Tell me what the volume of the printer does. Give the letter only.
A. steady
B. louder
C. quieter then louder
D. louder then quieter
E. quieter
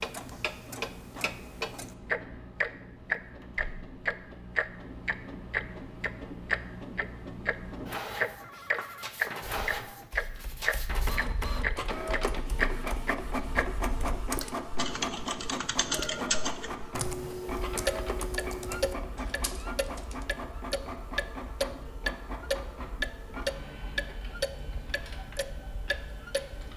D.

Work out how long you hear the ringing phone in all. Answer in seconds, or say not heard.
2 s.